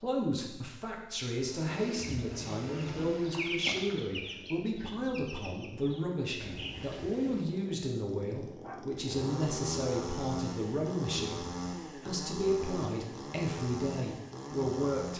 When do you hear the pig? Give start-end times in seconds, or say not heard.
not heard.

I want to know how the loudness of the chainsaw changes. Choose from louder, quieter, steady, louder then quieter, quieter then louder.
quieter then louder.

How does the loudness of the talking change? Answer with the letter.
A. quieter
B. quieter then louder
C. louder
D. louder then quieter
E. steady
E.